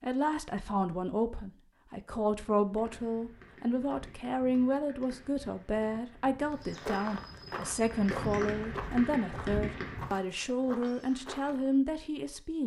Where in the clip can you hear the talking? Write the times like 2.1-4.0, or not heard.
0.0-12.6.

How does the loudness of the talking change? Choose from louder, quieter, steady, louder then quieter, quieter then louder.
steady.